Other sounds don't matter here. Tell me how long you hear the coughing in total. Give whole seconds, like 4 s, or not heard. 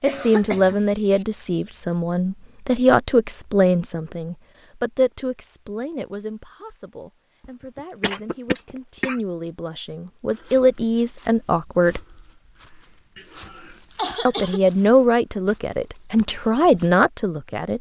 4 s.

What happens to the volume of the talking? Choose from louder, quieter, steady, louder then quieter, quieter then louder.
quieter then louder.